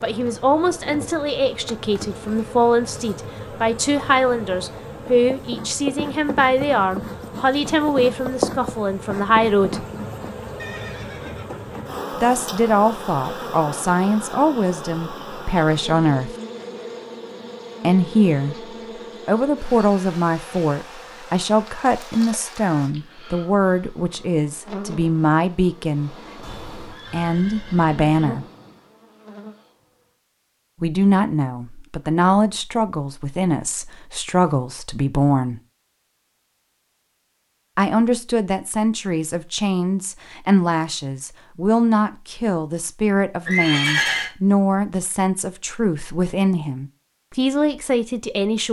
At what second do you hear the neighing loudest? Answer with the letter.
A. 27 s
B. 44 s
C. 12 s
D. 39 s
B.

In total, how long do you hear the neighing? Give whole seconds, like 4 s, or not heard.
4 s.